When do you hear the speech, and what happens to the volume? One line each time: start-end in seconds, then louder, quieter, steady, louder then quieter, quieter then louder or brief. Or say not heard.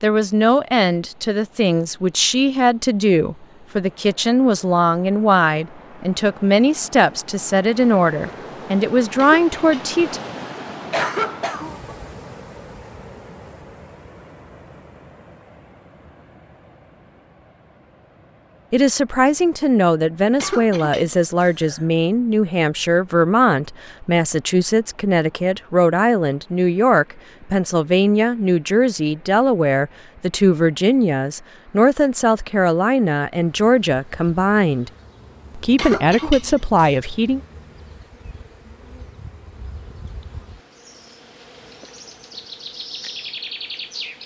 0.0-10.2 steady
18.7-34.9 steady
35.5-37.4 brief.